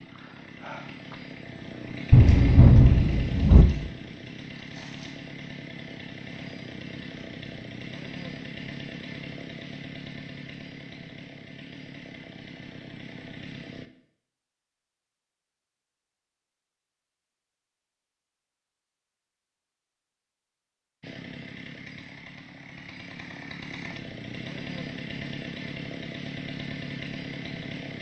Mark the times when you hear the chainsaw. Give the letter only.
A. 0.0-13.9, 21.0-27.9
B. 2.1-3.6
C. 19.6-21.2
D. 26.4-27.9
A.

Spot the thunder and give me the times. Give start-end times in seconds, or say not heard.
2.1-3.6.